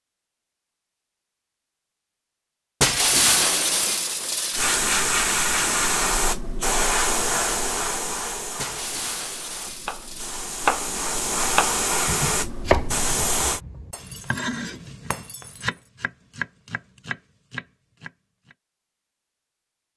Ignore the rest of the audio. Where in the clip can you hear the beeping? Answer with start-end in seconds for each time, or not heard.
not heard.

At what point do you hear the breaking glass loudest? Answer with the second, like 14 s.
3 s.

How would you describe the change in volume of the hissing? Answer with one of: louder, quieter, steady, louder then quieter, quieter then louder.
quieter then louder.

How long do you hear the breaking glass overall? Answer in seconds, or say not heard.
5 s.